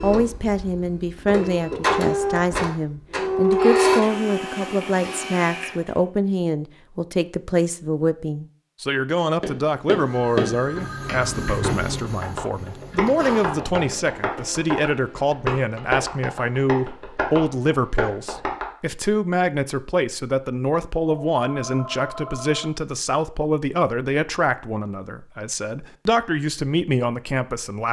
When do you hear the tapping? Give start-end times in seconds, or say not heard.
9.4-18.6.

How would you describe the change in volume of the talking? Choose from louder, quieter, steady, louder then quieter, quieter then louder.
steady.